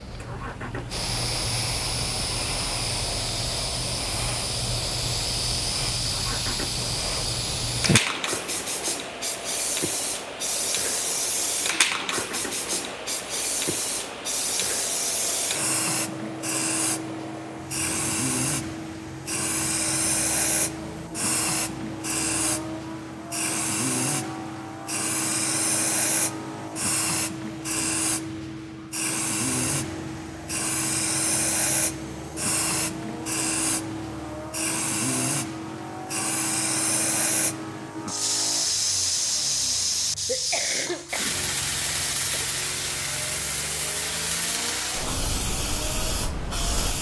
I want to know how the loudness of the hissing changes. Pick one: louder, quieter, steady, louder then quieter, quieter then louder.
steady.